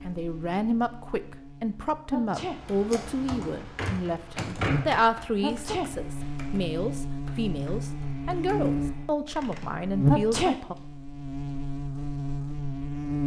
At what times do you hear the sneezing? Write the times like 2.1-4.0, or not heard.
2.1-2.6, 5.4-5.9, 10.1-10.6.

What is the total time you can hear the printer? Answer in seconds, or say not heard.
not heard.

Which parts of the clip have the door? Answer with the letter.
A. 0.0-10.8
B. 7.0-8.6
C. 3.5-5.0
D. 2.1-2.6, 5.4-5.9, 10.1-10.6
C.